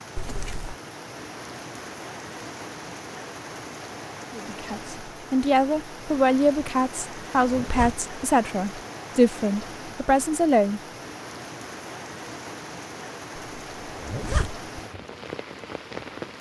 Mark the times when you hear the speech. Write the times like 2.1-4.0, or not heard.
4.3-10.8.